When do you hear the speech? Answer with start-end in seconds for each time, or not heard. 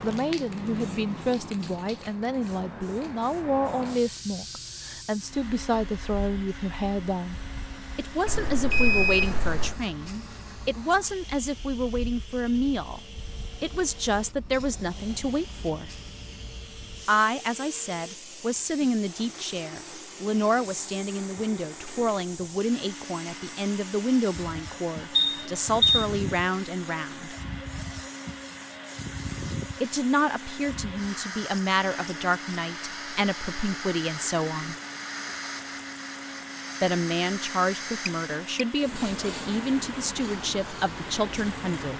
0.0-7.3, 8.0-13.0, 13.6-15.9, 17.1-27.4, 29.8-34.8, 36.8-41.9.